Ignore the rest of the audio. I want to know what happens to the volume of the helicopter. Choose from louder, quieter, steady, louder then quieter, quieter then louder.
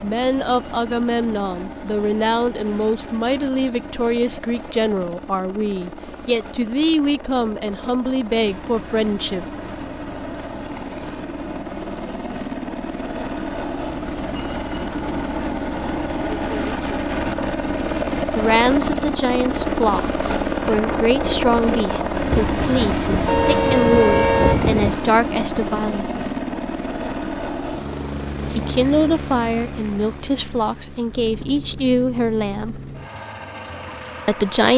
louder then quieter.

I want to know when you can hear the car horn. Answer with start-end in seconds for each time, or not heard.
22.3-24.9.